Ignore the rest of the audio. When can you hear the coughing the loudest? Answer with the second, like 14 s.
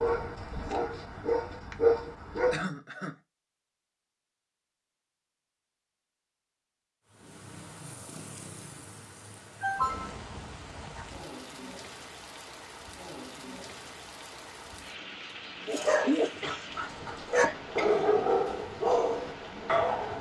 10 s.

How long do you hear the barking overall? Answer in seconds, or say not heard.
7 s.